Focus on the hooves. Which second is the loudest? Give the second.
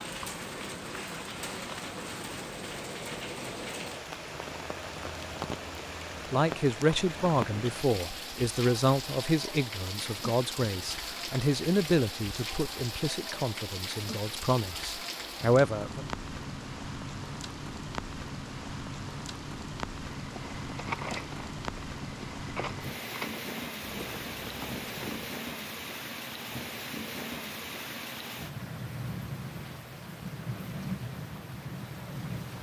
21 s.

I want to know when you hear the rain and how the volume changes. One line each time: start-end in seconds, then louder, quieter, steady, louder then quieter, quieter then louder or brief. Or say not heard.
0.0-32.5 steady.